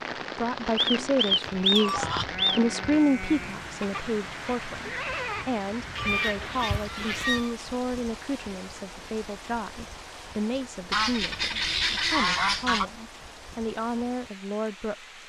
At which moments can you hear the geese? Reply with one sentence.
You can hear the geese from 0.8 to 2.6 s, from 6.0 to 7.5 s and from 10.9 to 12.8 s.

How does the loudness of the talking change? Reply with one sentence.
The loudness of the talking goes down.